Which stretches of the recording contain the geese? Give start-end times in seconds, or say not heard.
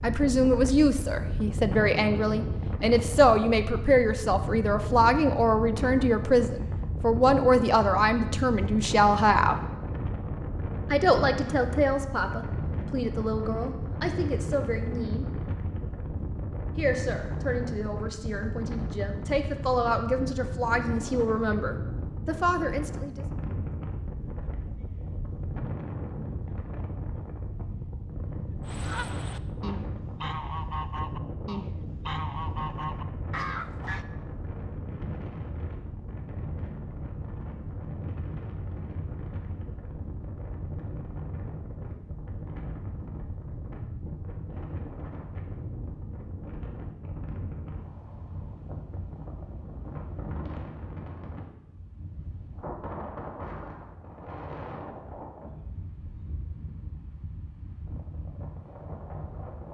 28.6-34.0.